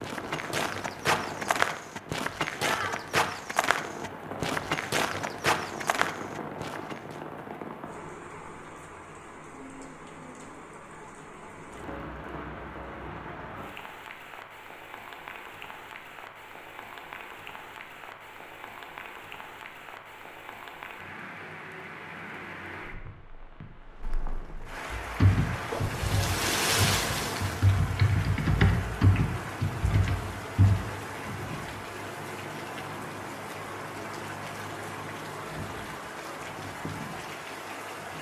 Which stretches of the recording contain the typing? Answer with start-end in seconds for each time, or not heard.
25.1-30.8.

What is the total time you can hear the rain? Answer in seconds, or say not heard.
38 s.